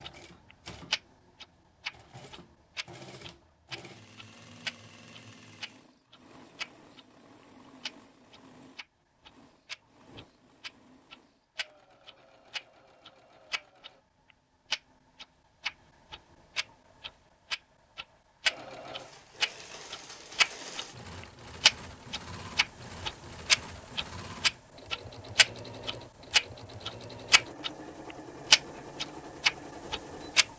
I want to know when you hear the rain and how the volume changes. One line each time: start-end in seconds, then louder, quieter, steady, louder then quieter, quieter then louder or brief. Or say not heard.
not heard.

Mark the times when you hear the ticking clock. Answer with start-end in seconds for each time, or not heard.
0.0-7.0, 7.8-13.9, 14.7-20.9, 21.6-27.7, 28.5-30.5.